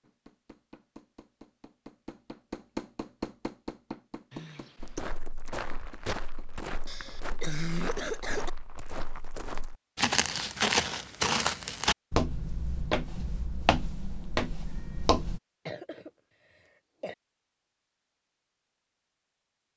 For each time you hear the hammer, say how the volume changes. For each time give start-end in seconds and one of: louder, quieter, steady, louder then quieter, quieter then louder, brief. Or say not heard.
0.0-7.5 louder then quieter.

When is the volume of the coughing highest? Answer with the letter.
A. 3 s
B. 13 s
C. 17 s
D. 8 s
D.